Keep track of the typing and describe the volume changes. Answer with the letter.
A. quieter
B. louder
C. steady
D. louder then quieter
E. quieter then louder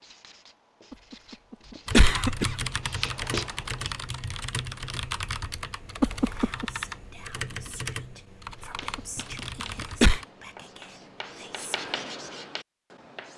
A.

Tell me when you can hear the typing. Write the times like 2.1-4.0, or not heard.
1.9-10.2.